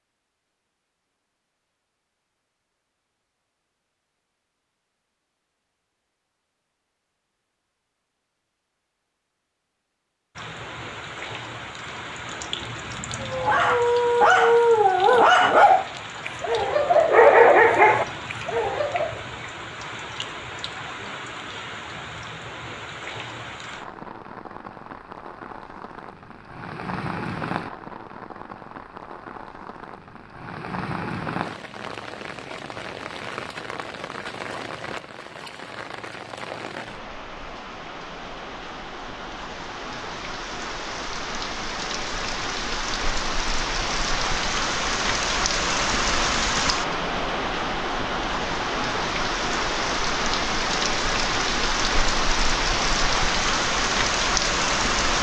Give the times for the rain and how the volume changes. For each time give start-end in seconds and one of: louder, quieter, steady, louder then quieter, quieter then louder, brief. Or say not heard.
10.3-55.1 louder.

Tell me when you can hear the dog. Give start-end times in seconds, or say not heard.
13.2-19.2.